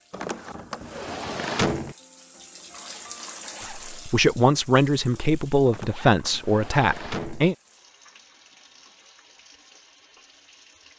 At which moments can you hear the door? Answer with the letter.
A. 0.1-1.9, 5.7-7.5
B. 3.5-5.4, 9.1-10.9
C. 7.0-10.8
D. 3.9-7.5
A.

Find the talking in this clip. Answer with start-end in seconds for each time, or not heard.
3.9-7.5.